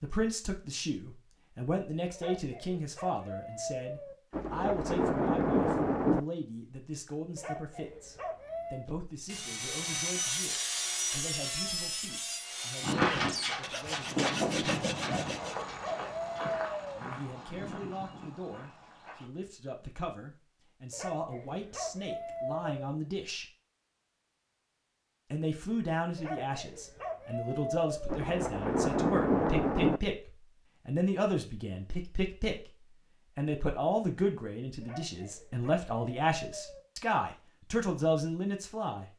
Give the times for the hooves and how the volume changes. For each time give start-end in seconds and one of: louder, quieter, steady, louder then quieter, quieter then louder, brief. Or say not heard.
12.8-19.2 quieter.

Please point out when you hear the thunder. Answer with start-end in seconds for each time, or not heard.
4.3-6.2, 28.1-30.0.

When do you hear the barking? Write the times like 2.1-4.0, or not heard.
2.1-4.2, 7.3-8.8, 15.0-17.0, 20.9-22.9, 26.1-28.2, 34.8-36.8.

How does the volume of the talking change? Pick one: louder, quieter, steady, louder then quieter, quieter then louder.
quieter then louder.